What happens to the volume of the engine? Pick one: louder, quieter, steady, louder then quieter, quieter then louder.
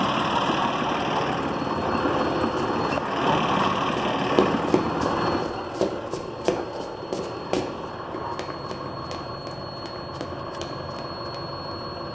quieter.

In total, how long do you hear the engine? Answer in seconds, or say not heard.
12 s.